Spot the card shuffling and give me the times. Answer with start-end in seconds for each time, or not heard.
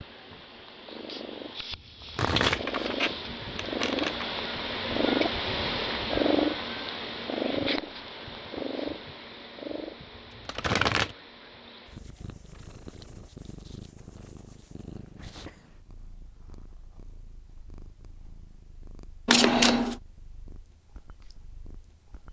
1.7-4.3, 10.3-11.2, 19.2-19.9.